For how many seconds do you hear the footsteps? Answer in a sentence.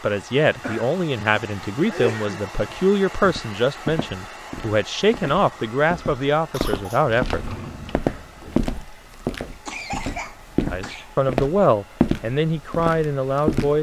You can hear the footsteps for 11 seconds altogether.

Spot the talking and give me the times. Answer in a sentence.
You can hear the talking from 0.0 to 7.5 s and from 10.7 to 13.7 s.